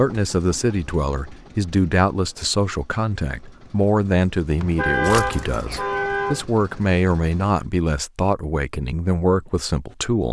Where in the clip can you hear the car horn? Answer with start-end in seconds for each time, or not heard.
4.6-6.5.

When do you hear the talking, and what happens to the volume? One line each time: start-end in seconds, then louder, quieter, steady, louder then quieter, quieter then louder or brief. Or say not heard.
0.0-10.2 steady.